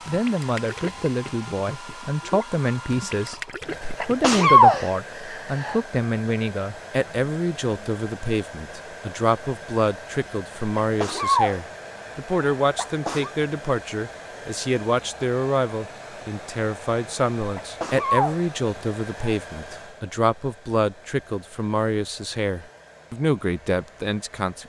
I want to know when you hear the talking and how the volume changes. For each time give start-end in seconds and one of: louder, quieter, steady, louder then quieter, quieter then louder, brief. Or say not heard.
0.1-24.6 steady.